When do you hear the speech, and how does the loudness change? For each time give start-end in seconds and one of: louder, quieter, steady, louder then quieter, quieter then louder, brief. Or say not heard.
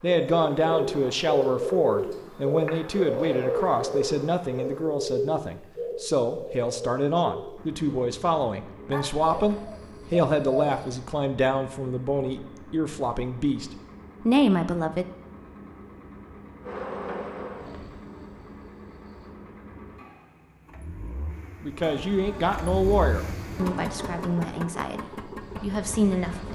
0.0-15.1 steady
21.6-26.5 quieter then louder.